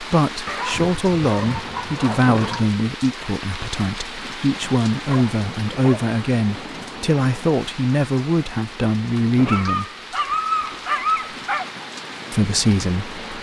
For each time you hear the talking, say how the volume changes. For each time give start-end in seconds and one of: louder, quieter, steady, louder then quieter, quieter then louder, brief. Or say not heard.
0.0-9.8 steady
12.3-13.2 brief.